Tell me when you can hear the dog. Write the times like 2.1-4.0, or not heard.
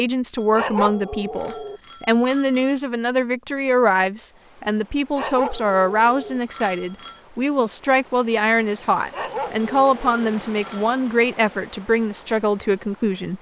0.6-1.8, 5.2-6.4, 9.1-10.2.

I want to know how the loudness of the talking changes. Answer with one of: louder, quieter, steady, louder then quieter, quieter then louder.
steady.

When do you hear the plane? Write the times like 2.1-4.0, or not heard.
not heard.